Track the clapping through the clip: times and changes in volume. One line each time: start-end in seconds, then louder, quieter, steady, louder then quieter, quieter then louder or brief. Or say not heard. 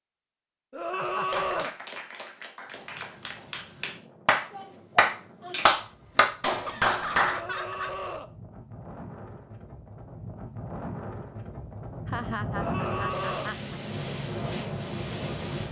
1.3-7.4 louder.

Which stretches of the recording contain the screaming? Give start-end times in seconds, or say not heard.
0.7-1.8, 7.2-8.3, 12.5-13.6.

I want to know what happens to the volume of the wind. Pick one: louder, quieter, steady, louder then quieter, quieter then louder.
louder.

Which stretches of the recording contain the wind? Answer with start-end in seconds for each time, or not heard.
2.6-15.6.